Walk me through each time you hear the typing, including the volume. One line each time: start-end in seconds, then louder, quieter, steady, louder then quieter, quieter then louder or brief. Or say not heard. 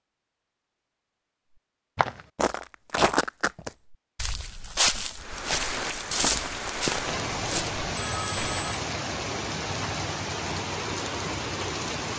not heard.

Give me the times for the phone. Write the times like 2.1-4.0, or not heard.
7.9-8.8.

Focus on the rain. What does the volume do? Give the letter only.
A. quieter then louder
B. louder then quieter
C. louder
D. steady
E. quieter
D.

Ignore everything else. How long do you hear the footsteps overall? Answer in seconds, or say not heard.
7 s.